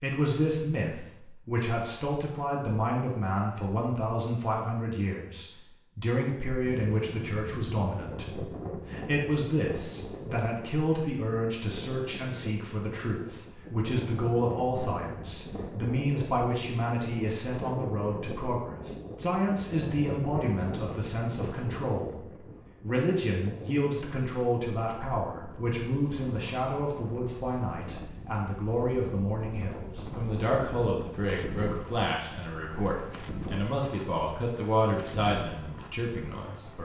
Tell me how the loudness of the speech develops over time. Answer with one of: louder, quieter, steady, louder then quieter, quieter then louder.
steady.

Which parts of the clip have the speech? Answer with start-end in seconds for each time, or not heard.
0.0-22.1, 22.8-36.7.